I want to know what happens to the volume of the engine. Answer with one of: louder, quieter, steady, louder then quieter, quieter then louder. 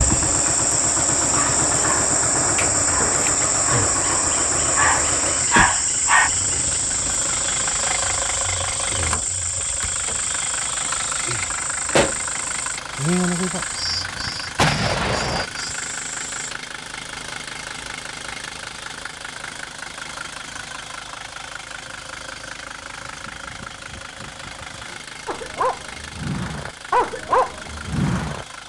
quieter.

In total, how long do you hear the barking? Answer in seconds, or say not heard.
8 s.